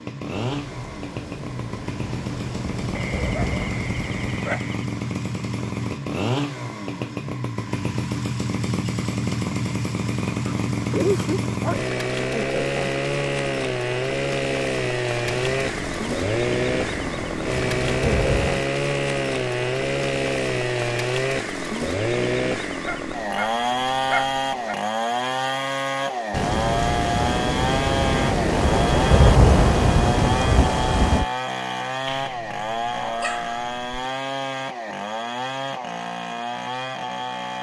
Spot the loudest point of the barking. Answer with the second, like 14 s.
11 s.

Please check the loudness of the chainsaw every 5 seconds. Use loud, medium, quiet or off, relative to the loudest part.
medium, loud, loud, loud, loud, loud, loud, medium.